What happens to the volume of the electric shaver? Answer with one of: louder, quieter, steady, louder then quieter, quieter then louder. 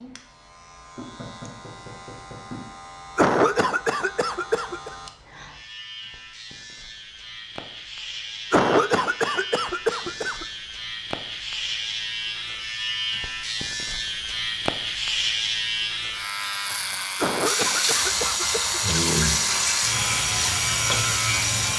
louder.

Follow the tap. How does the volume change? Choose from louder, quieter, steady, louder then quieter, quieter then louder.
steady.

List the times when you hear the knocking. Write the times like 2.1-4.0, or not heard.
0.9-2.7.